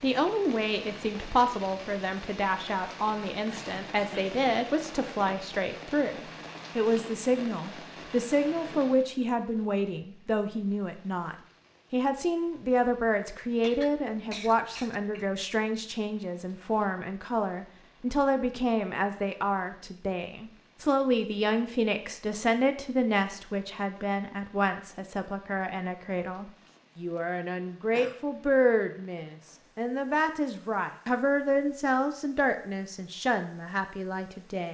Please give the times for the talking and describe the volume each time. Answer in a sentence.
You can hear the talking from 0.0 to 34.7 s, at a steady volume.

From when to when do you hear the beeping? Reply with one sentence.
You can't hear the beeping here.